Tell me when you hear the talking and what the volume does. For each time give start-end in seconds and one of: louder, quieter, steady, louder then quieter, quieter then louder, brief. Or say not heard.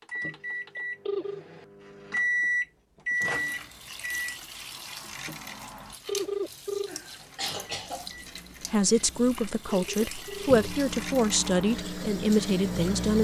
8.7-13.1 steady.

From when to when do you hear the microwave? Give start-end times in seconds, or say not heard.
0.0-4.3, 7.7-13.1.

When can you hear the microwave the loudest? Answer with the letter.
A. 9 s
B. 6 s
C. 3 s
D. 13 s
C.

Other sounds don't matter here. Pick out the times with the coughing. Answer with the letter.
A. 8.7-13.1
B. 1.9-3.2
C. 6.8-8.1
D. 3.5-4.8
C.